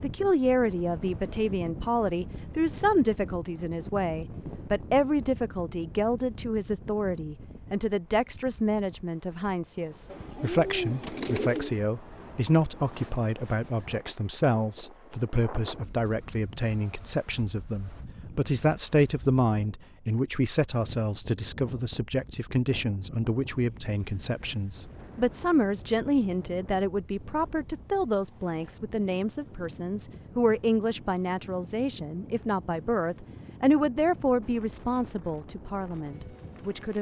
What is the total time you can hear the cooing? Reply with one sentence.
The cooing can be heard for 2 seconds in total.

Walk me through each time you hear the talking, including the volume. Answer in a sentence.
You can hear the talking from 0.0 to 36.9 s, at a steady volume.